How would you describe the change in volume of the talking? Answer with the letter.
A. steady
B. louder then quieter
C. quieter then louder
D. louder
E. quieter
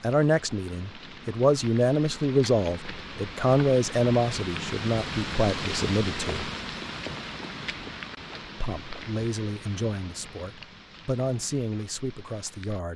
E.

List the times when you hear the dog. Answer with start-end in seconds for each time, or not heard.
not heard.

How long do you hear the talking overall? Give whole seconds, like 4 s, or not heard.
11 s.